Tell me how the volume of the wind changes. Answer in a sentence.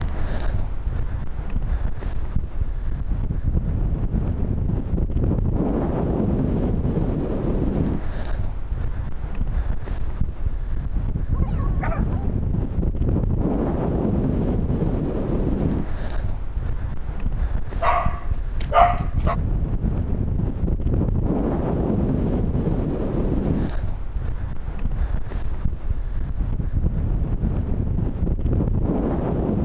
The loudness of the wind stays about the same.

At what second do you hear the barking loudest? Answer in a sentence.
The volume of the barking peaks at 19 seconds.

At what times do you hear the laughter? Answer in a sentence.
You can't hear the laughter here.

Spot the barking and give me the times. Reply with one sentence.
You can hear the barking from 11.3 to 12.2 s and from 17.8 to 19.4 s.